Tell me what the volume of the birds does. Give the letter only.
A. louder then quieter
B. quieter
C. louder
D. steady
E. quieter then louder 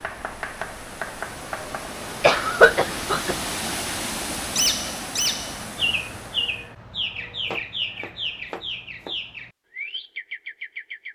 B.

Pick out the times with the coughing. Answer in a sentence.
You can hear the coughing from 2.2 to 3.4 s.